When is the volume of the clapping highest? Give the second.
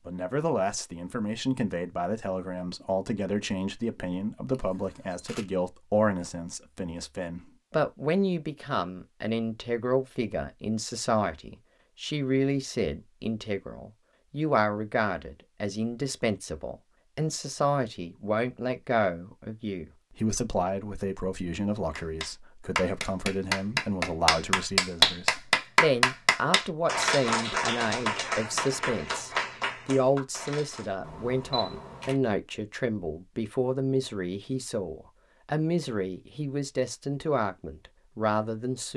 25 s.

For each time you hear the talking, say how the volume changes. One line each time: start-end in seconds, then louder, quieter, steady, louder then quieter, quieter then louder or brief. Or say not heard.
0.1-38.9 steady.